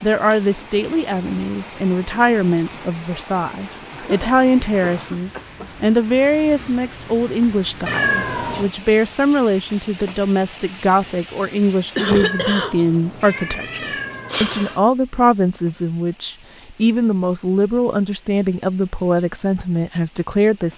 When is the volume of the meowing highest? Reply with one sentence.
The volume of the meowing peaks at 8 seconds.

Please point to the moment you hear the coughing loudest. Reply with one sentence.
The volume of the coughing peaks at 12 seconds.